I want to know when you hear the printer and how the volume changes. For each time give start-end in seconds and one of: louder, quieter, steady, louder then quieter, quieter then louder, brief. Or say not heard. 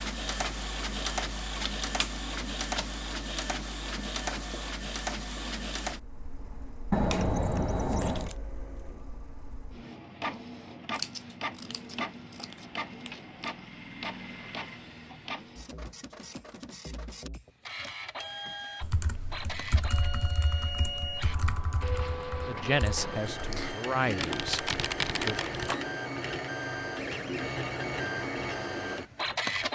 0.0-29.6 quieter then louder.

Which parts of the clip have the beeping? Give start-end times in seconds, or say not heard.
not heard.